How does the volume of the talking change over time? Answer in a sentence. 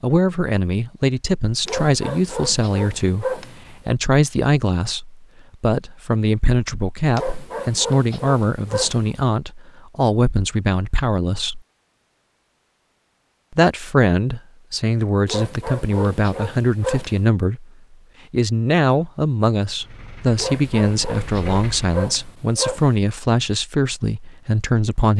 The volume of the talking stays about the same.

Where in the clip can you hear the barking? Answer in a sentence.
You can hear the barking from 1.6 to 4.0 s, from 7.1 to 9.2 s, from 15.2 to 17.2 s and from 20.4 to 22.9 s.